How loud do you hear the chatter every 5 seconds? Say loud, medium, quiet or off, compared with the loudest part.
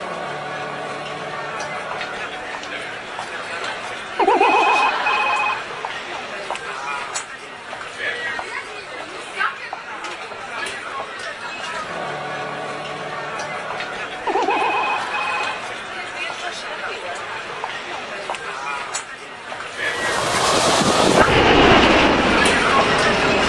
medium, medium, medium, medium, loud.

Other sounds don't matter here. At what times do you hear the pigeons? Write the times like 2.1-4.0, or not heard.
not heard.